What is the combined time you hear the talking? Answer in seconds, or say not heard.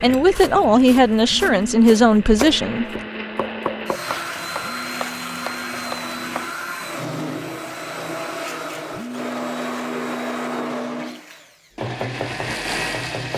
3 s.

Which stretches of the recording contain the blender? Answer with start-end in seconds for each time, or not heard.
0.0-13.3.